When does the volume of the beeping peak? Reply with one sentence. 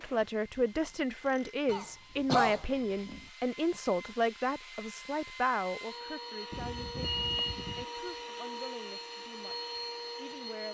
The loudest moment of the beeping is at 7 seconds.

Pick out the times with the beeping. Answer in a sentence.
You can hear the beeping from 2.7 to 3.2 s and from 6.5 to 7.8 s.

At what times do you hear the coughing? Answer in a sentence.
You can hear the coughing from 1.6 to 3.2 s.